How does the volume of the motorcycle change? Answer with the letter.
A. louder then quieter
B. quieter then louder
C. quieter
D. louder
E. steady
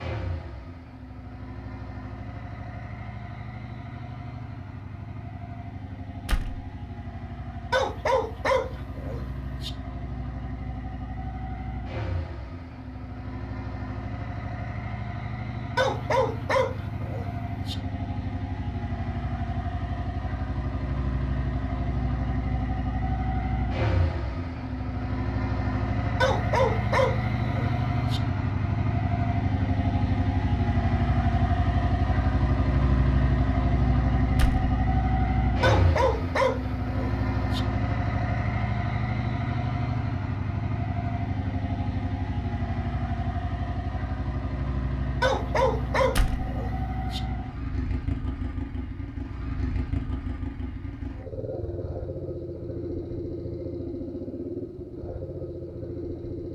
A.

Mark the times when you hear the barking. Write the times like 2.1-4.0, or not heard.
7.7-9.7, 15.8-17.8, 26.2-28.2, 35.6-37.6, 45.2-47.2.